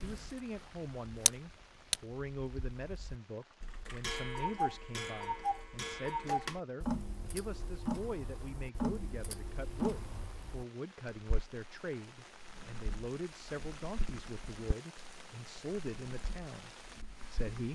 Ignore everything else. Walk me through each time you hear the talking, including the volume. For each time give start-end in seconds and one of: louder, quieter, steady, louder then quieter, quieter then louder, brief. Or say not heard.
0.0-17.6 steady.